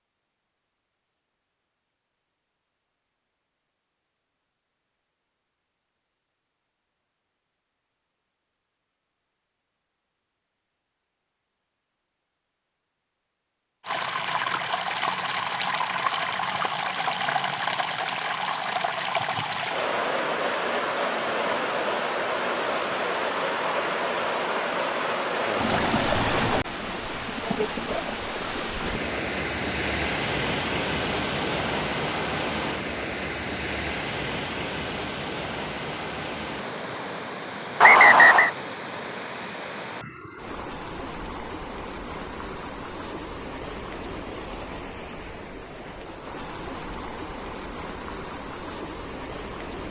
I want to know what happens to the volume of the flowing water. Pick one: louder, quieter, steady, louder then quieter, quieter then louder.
quieter.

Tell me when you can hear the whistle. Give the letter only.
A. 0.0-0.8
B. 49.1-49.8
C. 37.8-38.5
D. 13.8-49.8
C.